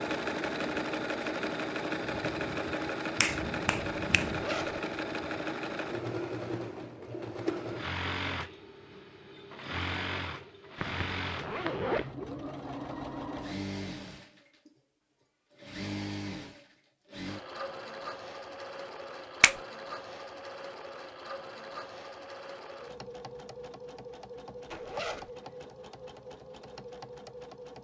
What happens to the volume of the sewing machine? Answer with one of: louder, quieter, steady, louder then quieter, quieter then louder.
quieter.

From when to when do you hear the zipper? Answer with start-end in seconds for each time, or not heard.
4.2-4.8, 10.8-12.1, 24.7-25.3.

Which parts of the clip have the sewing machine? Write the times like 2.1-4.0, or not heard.
0.0-27.7.